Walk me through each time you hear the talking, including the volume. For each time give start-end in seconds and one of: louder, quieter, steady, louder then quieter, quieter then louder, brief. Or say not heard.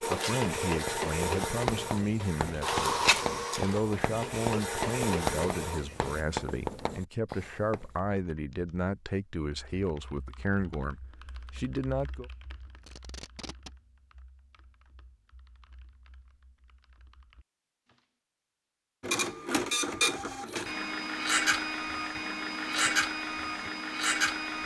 0.1-12.3 steady.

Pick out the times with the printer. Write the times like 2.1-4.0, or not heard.
0.0-6.2, 19.0-24.6.